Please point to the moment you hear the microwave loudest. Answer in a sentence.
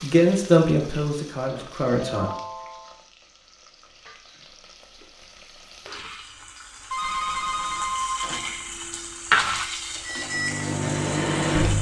The volume of the microwave peaks at 11 seconds.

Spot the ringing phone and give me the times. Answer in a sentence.
The ringing phone can be heard from 2.0 to 3.0 s and from 6.9 to 8.4 s.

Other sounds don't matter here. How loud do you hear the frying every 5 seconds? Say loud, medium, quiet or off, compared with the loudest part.
quiet, loud, medium.